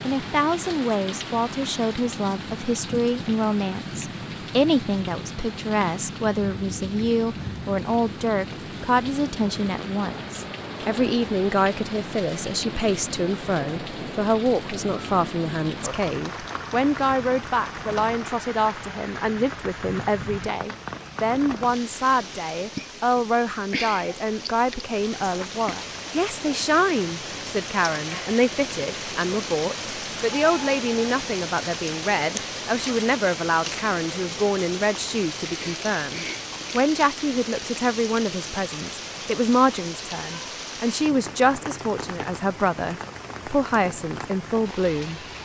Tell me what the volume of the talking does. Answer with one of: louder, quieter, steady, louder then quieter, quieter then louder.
steady.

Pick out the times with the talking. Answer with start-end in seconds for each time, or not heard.
0.0-45.2.